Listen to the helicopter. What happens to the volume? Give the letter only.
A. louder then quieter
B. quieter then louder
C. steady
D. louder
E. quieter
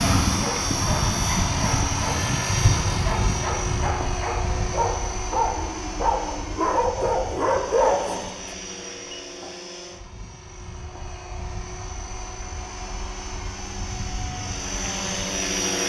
B.